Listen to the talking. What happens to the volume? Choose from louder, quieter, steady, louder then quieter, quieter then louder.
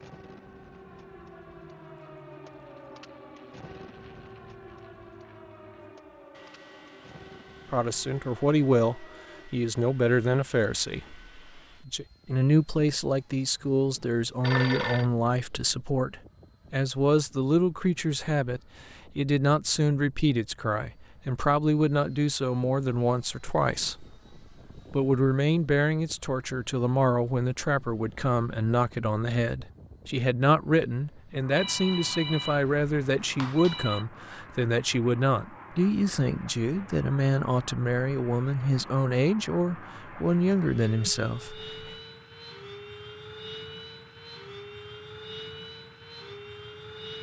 steady.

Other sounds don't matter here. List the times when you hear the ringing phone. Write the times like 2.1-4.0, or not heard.
14.4-15.1, 31.6-34.0.